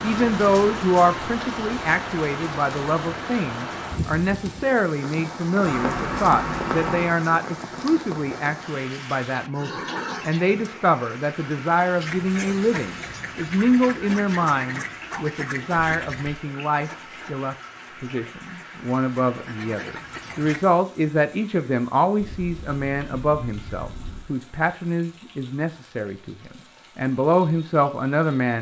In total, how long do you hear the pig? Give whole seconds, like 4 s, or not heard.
not heard.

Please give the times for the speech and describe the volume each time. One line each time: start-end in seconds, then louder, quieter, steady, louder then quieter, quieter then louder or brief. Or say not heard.
0.0-28.5 steady.